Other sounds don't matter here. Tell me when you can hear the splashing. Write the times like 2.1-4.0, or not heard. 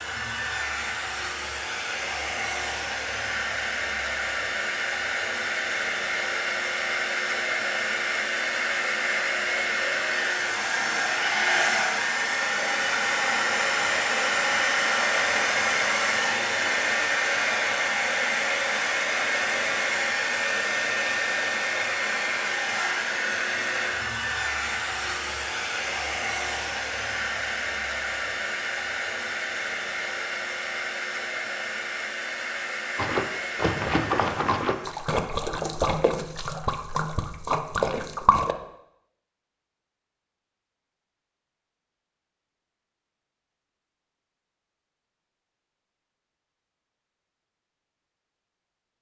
33.0-38.5.